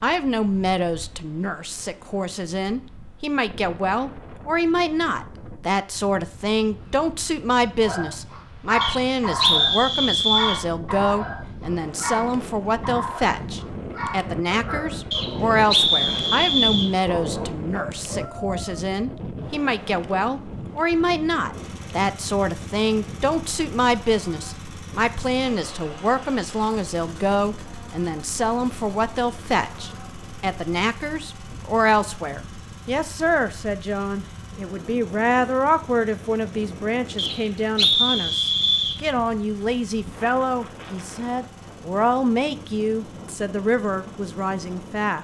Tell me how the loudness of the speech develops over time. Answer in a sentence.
The loudness of the speech stays about the same.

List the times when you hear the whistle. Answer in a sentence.
The whistle can be heard from 8.8 to 10.6 s, from 15.1 to 16.9 s and from 37.1 to 39.0 s.